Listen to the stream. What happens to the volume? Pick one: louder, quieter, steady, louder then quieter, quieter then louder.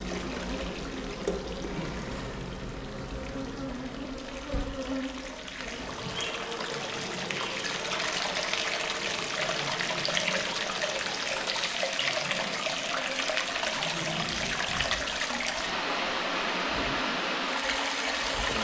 louder.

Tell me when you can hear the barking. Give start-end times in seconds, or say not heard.
not heard.